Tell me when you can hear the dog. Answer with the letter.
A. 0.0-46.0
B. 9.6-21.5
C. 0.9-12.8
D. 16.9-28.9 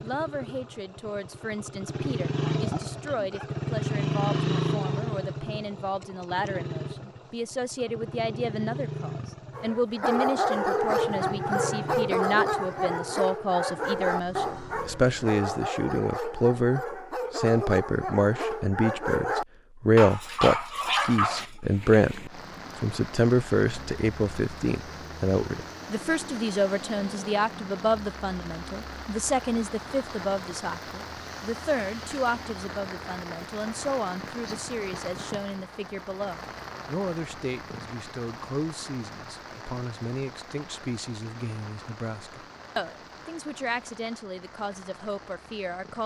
B.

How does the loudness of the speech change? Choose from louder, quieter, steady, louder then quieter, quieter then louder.
louder then quieter.